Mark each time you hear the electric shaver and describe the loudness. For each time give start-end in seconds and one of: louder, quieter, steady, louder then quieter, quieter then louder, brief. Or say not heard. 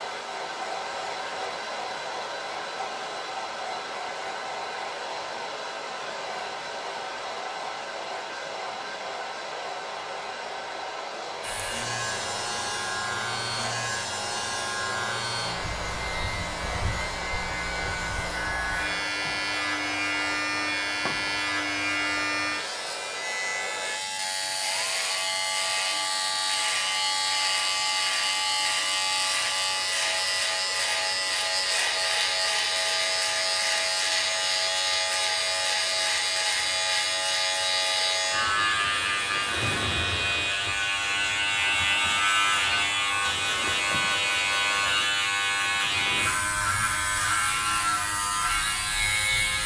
11.4-49.6 louder.